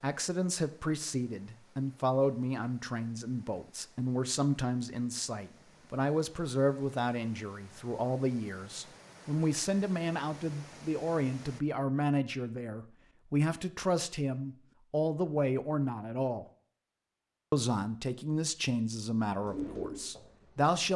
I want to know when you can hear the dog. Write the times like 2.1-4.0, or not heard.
not heard.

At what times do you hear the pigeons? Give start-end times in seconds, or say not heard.
19.3-20.8.